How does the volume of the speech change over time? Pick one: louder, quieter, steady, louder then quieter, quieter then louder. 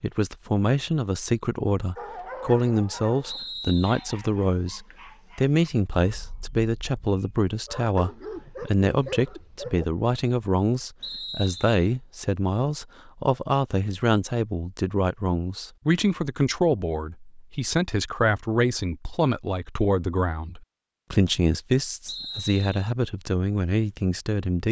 steady.